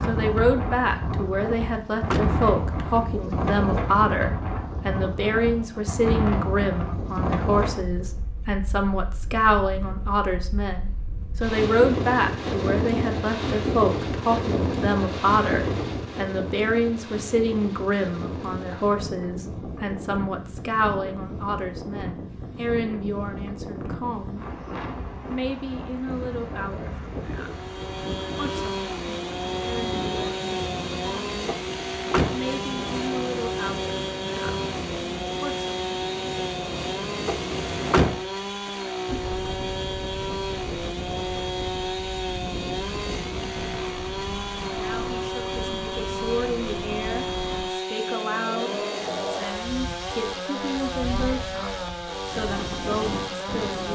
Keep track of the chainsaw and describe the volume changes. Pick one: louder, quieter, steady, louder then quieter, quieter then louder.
steady.